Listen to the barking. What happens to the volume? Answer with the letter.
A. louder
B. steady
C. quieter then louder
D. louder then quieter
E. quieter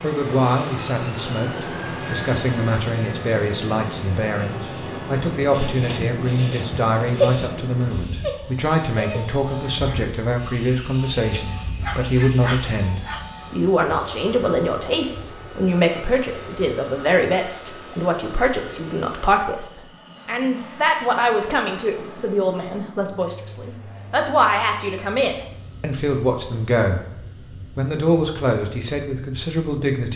C.